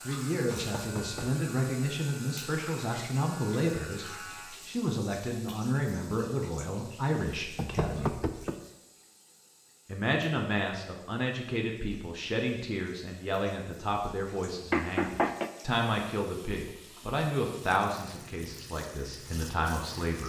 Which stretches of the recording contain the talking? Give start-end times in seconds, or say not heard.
0.1-8.2, 9.8-20.2.